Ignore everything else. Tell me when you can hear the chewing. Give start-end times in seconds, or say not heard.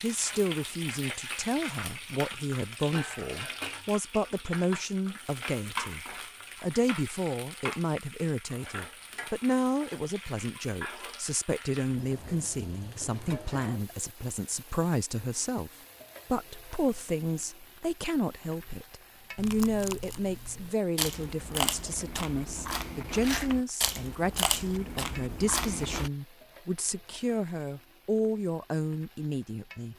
19.4-26.1.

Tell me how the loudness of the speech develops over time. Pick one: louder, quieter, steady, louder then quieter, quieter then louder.
steady.